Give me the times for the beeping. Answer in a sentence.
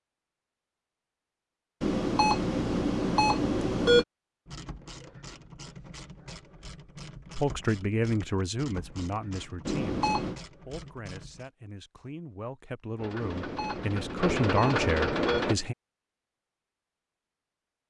You can hear the beeping from 1.8 to 4.0 s, from 9.7 to 10.3 s and from 13.2 to 15.7 s.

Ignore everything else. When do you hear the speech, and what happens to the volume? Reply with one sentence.
The speech can be heard from 7.3 to 15.8 s, getting quieter then louder.